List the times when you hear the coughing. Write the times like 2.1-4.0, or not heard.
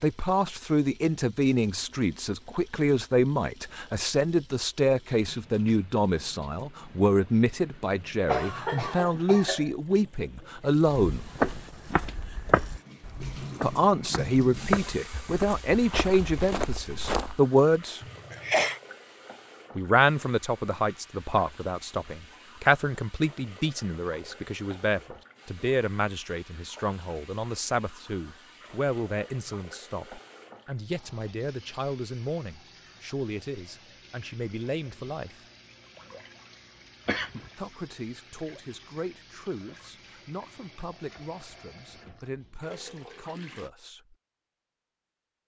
8.2-9.7, 18.0-18.8, 37.0-37.5.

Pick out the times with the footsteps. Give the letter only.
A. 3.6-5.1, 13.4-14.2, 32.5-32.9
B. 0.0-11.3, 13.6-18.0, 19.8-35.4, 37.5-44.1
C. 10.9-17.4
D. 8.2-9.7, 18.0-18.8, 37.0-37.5
C.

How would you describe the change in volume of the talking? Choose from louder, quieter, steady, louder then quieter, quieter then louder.
quieter.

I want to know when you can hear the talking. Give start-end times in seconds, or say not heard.
0.0-11.3, 13.6-18.0, 19.8-35.4, 37.5-44.1.